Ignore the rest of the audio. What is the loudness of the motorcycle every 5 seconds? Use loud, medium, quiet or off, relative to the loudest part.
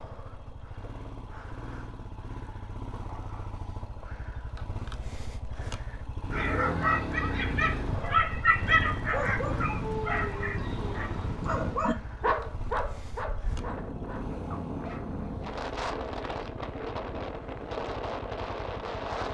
medium, loud, medium, medium.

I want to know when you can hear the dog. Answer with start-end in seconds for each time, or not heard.
6.3-15.1.